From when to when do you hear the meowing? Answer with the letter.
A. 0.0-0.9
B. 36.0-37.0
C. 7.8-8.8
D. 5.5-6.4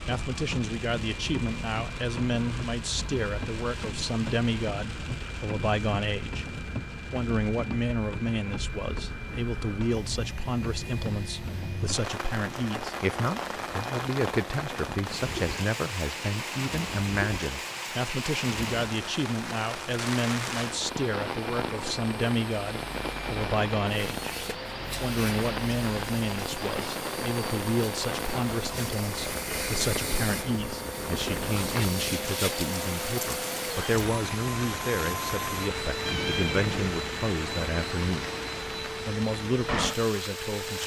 B.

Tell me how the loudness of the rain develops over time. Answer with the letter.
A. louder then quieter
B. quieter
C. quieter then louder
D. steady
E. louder
D.